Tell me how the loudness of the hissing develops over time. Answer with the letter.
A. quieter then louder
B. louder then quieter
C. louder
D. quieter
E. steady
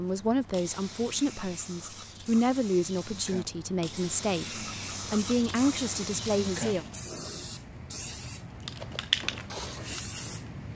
C.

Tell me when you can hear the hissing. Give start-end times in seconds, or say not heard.
0.0-10.7.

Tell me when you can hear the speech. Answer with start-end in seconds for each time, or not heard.
0.0-6.8.